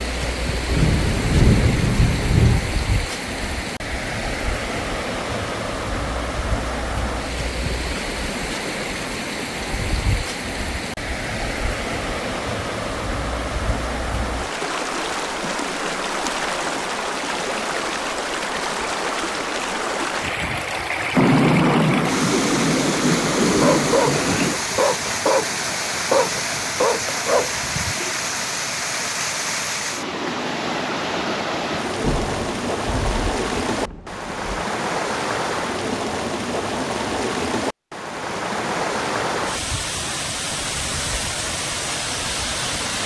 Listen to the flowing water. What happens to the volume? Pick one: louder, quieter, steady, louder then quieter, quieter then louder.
steady.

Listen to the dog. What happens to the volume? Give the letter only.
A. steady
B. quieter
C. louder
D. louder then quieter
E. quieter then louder
A.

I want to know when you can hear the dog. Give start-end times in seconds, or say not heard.
23.4-28.1.